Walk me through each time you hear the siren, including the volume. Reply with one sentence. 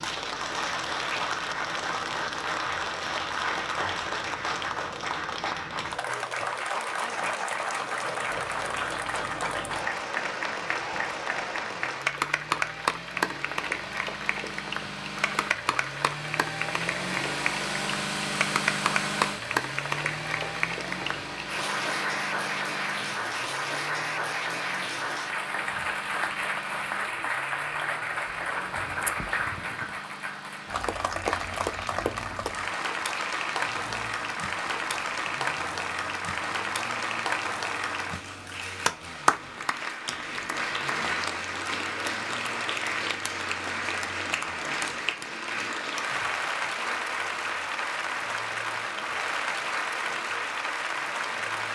You can't hear the siren here.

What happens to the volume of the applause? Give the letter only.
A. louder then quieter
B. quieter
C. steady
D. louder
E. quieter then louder
C.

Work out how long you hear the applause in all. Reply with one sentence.
You can hear the applause for 52 seconds altogether.